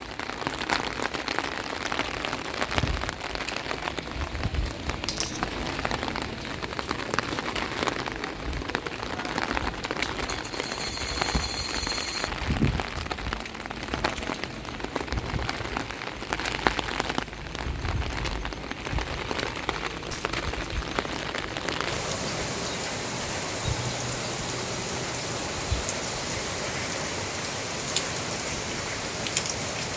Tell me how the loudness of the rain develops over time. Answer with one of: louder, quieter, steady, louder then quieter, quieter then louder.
steady.